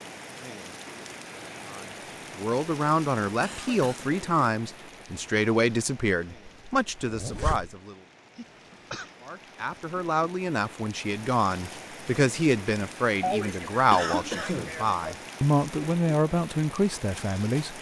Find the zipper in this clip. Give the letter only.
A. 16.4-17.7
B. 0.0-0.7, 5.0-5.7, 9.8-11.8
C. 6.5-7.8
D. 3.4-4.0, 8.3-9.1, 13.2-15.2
C.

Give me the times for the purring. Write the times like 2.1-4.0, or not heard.
not heard.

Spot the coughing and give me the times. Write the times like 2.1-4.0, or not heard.
3.4-4.0, 8.3-9.1, 13.2-15.2.